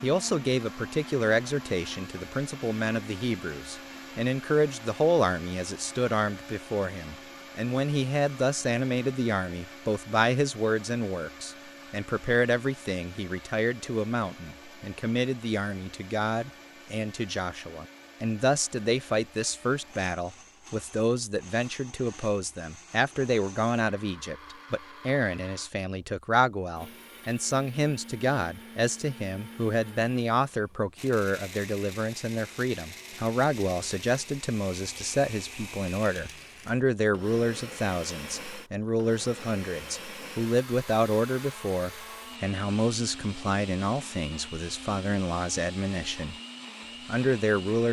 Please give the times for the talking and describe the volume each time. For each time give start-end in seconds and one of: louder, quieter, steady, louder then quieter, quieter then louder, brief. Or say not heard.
0.0-46.4 steady
47.0-47.8 brief.